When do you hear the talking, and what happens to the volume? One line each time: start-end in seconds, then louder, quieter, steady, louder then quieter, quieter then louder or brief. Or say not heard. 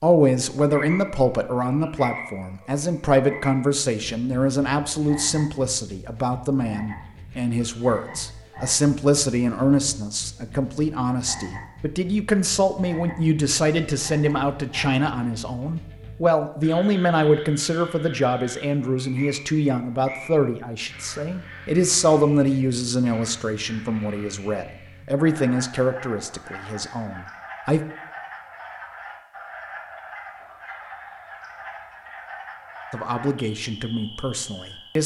0.0-27.8 steady
32.9-35.0 brief.